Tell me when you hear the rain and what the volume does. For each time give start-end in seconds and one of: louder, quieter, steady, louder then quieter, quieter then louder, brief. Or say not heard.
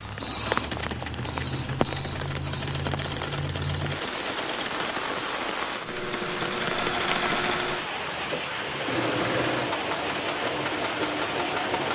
0.0-11.9 steady.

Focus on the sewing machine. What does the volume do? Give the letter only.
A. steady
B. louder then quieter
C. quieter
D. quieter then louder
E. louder
A.